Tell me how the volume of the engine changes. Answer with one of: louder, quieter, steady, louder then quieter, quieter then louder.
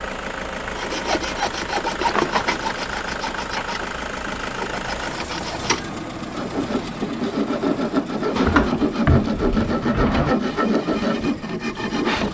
quieter.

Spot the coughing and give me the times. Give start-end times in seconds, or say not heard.
not heard.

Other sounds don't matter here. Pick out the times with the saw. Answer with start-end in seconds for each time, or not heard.
0.8-12.2.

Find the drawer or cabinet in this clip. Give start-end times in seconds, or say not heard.
2.0-2.6, 8.3-10.3.